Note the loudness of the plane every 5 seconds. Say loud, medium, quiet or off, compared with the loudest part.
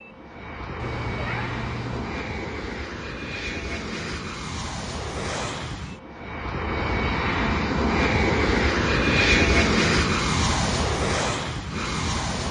medium, loud, loud.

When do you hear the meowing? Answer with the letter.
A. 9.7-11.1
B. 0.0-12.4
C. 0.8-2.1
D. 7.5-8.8
C.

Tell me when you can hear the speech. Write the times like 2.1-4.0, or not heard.
not heard.